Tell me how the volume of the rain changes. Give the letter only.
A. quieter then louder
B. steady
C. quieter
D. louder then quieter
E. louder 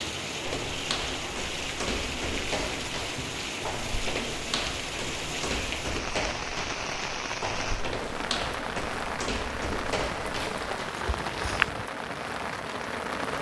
B.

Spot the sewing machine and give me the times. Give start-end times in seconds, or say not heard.
not heard.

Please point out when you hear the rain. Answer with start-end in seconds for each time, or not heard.
0.0-13.3.